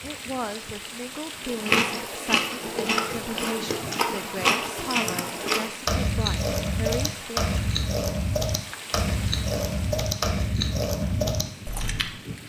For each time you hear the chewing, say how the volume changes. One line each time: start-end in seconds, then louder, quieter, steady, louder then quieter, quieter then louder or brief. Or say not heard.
1.4-12.1 steady.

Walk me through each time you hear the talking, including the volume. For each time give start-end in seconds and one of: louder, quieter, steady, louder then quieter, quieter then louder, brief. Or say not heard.
0.0-7.5 steady.